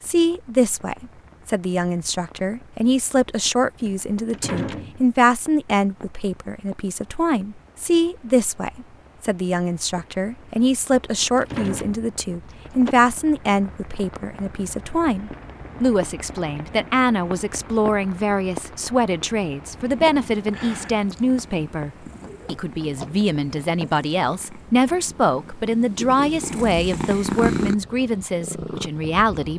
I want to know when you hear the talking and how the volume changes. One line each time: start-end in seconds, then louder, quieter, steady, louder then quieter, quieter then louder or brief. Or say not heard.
0.0-29.5 steady.